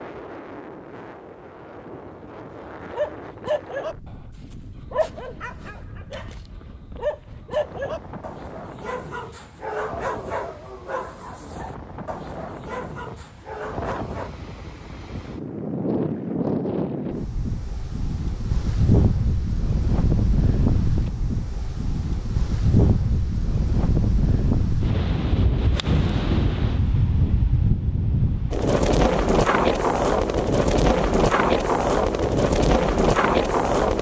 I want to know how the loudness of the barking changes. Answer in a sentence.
The volume of the barking goes down.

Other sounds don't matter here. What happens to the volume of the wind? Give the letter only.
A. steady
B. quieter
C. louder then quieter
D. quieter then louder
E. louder
E.